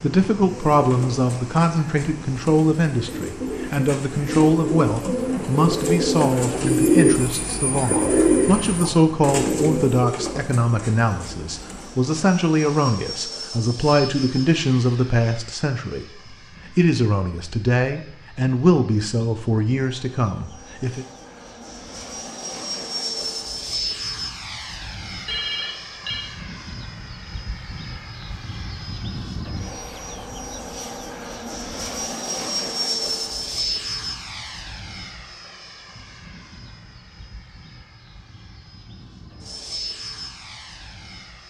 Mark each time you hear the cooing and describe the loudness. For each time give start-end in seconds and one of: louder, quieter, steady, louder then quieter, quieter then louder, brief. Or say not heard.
0.5-12.0 louder then quieter.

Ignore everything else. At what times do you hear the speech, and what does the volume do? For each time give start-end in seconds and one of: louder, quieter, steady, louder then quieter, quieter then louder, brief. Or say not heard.
0.0-21.1 steady.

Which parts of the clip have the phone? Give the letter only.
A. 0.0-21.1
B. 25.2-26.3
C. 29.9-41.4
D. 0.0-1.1
B.